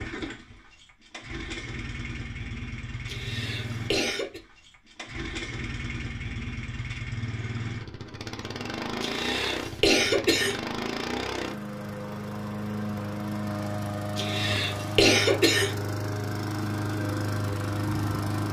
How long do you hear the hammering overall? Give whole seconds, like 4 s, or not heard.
not heard.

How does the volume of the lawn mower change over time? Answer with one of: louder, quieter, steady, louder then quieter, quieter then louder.
louder.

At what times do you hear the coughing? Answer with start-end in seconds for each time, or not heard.
3.0-4.4, 9.0-10.6, 14.2-15.8.